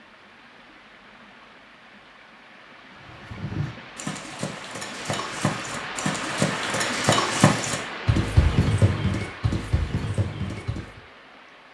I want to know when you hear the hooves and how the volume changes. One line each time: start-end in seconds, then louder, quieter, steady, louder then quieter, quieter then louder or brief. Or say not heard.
3.0-11.0 louder then quieter.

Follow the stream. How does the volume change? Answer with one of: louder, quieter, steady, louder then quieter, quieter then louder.
louder then quieter.